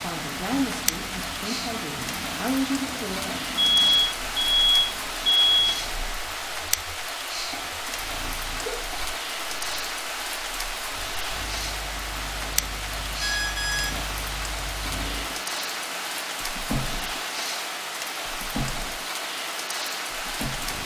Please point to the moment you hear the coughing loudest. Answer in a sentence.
The volume of the coughing peaks at 9 seconds.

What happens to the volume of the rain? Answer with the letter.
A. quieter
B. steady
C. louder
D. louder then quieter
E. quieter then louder
B.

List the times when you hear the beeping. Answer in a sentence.
You can hear the beeping from 3.5 to 5.8 s and from 13.2 to 14.0 s.